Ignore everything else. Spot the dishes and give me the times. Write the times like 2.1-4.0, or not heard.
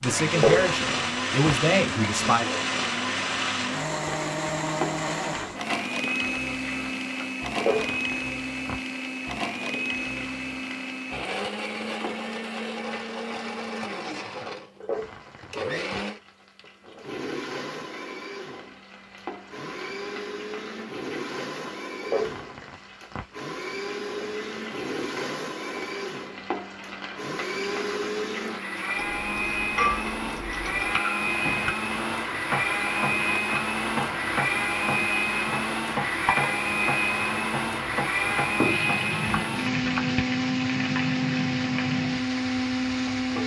not heard.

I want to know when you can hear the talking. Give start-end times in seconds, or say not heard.
0.0-2.5.